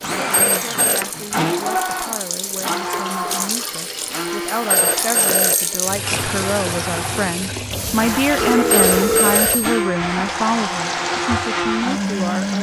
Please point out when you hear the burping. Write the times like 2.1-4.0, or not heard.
7.8-9.4.